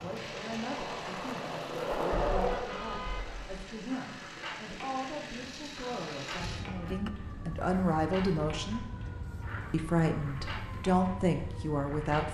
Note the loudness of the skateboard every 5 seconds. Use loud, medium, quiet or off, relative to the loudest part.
loud, medium, medium.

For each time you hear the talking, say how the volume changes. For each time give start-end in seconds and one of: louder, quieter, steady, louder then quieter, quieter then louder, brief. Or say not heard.
0.0-8.8 louder
9.7-12.3 brief.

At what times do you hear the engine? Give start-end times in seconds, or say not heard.
0.0-6.7.